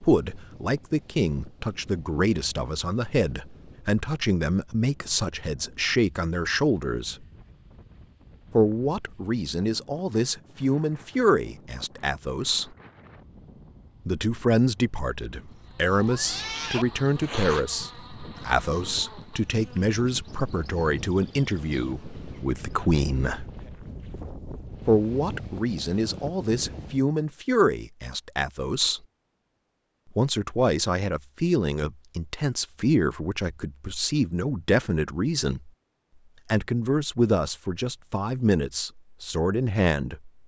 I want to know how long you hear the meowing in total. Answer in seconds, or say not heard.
2 s.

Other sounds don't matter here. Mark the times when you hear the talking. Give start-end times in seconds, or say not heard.
0.0-7.2, 8.6-12.8, 14.1-23.4, 24.9-29.0, 30.1-35.7, 36.5-40.3.